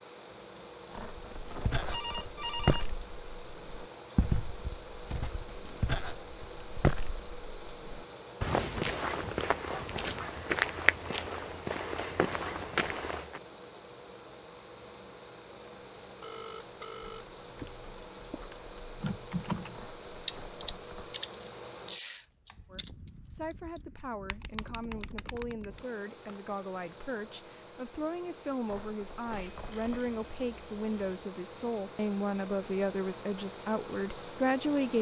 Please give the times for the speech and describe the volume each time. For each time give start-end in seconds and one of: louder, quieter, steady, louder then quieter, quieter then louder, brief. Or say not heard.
22.7-34.9 louder.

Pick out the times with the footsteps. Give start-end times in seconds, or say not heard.
1.2-13.4.